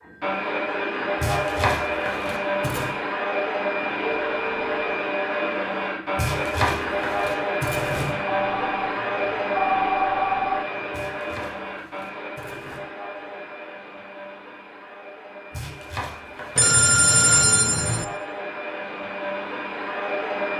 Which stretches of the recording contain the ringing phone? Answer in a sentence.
The ringing phone can be heard from 4.0 to 4.9 s, from 8.2 to 10.6 s and from 16.6 to 18.1 s.